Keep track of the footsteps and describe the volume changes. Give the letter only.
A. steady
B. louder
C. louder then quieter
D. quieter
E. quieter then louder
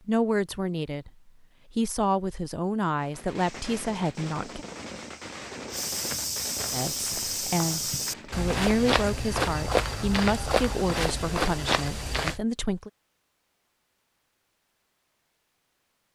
B.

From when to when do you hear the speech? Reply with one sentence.
You can hear the speech from 0.1 to 4.7 s and from 6.7 to 12.9 s.